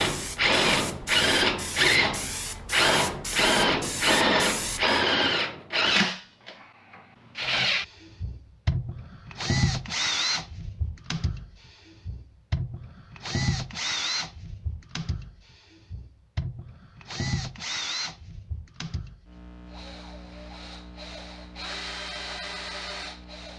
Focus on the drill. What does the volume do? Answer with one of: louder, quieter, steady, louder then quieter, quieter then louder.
quieter.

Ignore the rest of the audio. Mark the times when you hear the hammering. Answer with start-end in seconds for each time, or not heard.
not heard.